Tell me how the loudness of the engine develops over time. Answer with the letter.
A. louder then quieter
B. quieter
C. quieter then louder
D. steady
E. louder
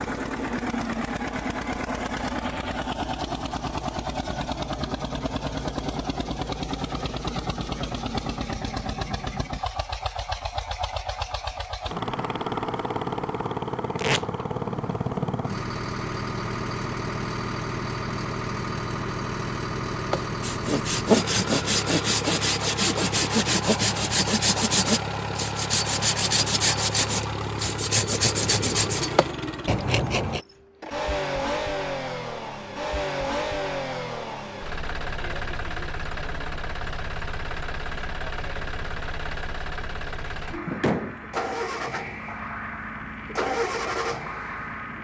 D.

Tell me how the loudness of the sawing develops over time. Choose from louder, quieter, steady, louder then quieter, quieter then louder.
steady.